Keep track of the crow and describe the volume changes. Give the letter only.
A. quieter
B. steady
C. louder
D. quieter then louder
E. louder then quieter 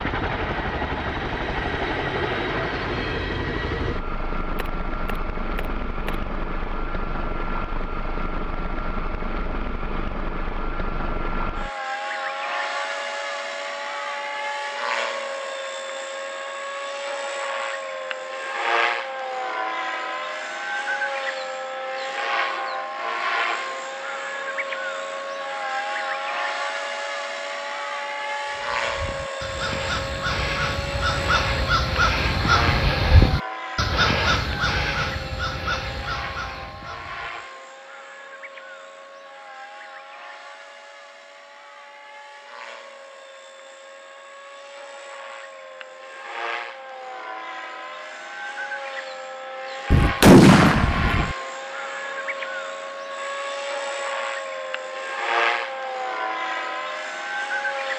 E.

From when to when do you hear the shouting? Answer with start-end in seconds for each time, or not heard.
not heard.